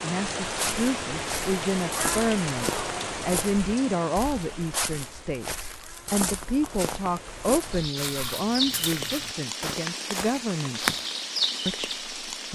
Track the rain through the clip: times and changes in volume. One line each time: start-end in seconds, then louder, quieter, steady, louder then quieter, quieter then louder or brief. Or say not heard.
0.0-12.5 quieter then louder.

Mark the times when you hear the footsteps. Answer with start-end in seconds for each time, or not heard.
0.4-11.1.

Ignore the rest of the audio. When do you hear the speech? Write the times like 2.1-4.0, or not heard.
0.0-10.8, 11.7-12.5.